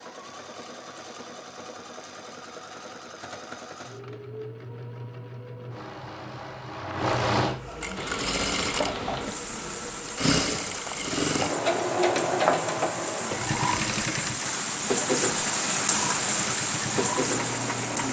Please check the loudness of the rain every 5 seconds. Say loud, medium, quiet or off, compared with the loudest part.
off, medium, medium, loud.